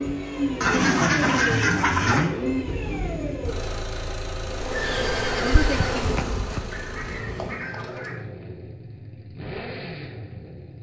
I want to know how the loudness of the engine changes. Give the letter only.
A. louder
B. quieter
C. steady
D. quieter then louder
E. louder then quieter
B.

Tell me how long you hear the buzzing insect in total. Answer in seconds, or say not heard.
3 s.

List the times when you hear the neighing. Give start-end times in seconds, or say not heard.
4.7-6.1.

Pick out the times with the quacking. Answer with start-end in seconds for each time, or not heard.
0.6-2.3, 6.7-8.2.